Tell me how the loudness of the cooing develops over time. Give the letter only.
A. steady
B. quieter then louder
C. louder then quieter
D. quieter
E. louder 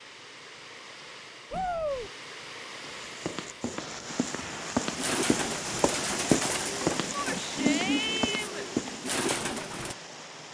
A.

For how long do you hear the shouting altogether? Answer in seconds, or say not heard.
2 s.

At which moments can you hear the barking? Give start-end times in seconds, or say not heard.
not heard.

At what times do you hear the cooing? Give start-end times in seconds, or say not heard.
4.8-9.9.